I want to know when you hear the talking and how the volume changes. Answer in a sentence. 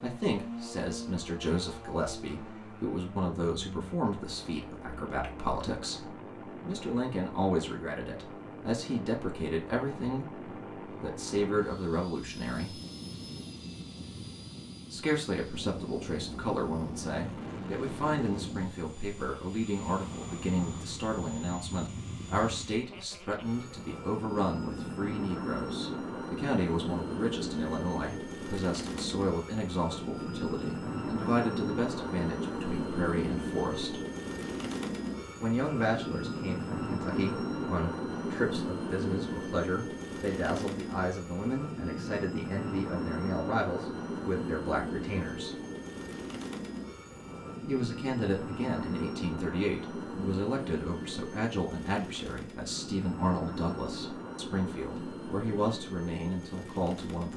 The talking can be heard from 0.0 to 12.8 s, at a steady volume; from 14.9 to 34.0 s, at a steady volume; from 35.4 to 45.5 s, at a steady volume; and from 47.6 to 57.3 s, at a steady volume.